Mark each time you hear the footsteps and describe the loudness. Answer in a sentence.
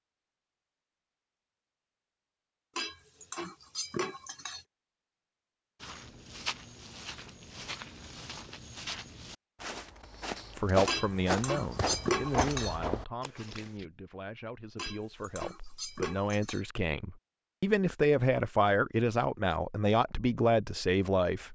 The footsteps can be heard from 5.8 to 13.8 s, getting louder.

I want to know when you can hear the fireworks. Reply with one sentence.
The fireworks can't be heard in this clip.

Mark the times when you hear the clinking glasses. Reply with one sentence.
The clinking glasses can be heard from 2.8 to 4.7 s, from 10.8 to 12.8 s and from 14.8 to 16.6 s.